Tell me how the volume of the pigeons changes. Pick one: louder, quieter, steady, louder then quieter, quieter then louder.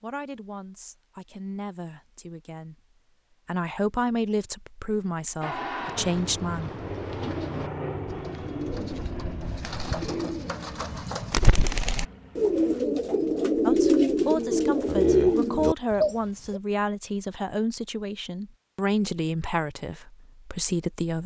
louder.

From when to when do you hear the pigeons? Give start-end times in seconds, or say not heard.
6.0-16.6.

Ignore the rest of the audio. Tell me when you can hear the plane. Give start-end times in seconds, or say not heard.
5.4-12.8.